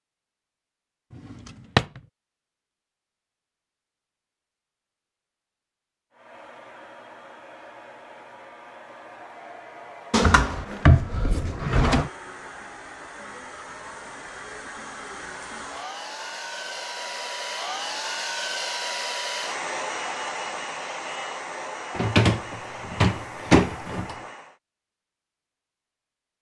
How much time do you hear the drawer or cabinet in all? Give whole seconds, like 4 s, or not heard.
5 s.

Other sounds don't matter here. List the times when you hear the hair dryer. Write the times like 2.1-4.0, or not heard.
6.1-24.6.